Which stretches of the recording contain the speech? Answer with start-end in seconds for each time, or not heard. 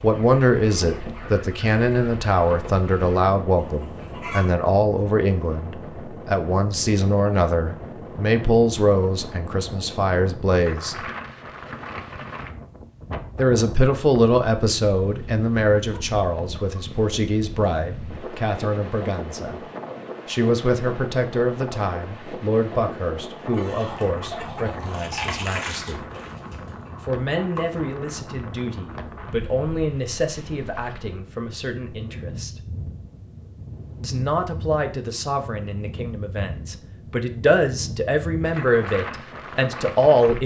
0.0-10.9, 13.3-19.6, 20.2-26.1, 27.0-32.5, 34.0-40.4.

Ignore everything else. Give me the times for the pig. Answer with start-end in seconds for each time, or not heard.
not heard.